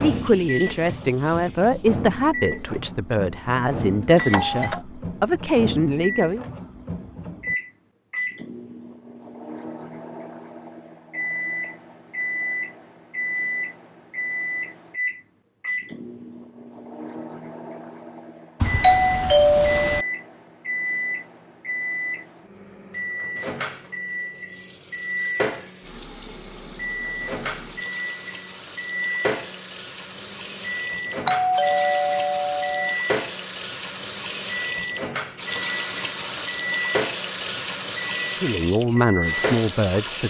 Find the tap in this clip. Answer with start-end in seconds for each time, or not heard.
0.0-1.9, 24.4-40.2.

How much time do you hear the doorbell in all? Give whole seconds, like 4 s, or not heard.
4 s.